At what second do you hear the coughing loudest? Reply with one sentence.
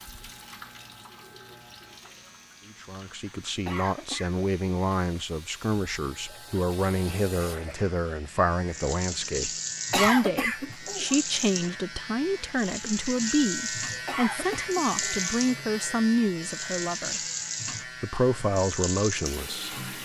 The volume of the coughing peaks at 10 seconds.